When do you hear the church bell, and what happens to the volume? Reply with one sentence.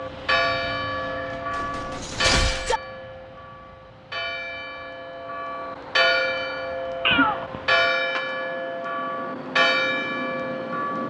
The church bell can be heard from 0.0 to 11.0 s, getting quieter then louder.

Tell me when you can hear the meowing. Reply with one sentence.
The meowing can be heard from 1.1 to 2.8 s and from 7.0 to 7.7 s.